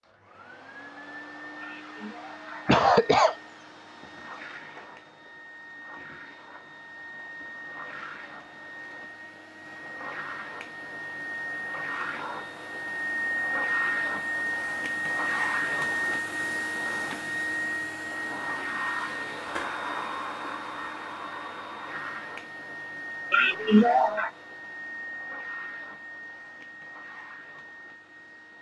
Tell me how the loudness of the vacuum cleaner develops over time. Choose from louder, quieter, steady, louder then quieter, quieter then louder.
louder then quieter.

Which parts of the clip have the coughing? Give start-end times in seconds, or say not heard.
1.6-3.4, 23.3-24.3.